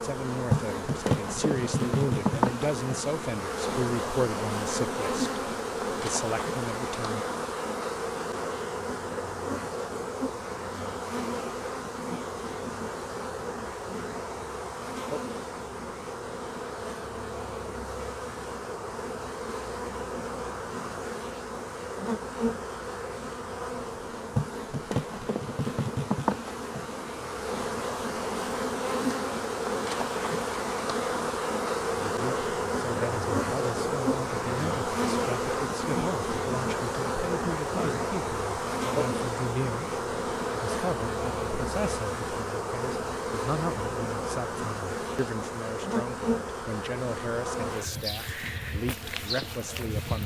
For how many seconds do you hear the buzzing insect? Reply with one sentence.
You can hear the buzzing insect for 50 seconds altogether.